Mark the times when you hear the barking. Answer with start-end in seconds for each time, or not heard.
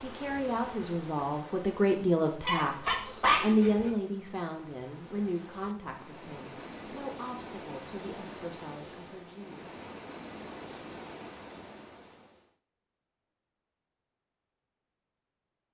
2.5-3.9.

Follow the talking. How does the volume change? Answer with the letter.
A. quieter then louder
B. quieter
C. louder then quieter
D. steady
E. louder
B.